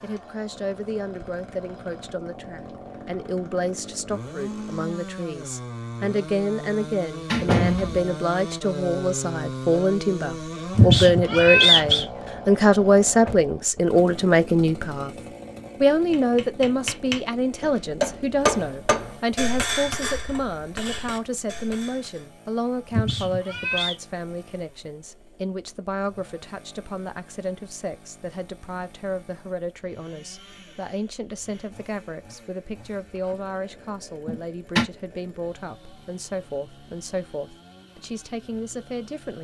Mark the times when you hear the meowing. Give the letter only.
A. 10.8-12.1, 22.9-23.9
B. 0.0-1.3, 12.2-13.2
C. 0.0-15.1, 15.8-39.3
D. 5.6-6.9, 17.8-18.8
A.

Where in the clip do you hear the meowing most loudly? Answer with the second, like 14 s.
12 s.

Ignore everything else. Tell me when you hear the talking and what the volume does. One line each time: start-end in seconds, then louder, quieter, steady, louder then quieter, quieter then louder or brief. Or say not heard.
0.0-15.1 louder
15.8-39.3 quieter.